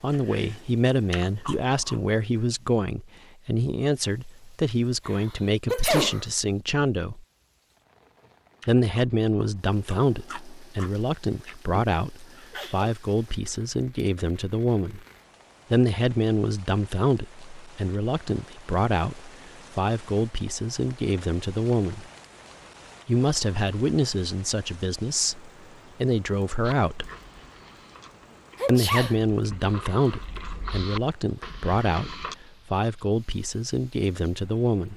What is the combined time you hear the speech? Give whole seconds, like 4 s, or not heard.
30 s.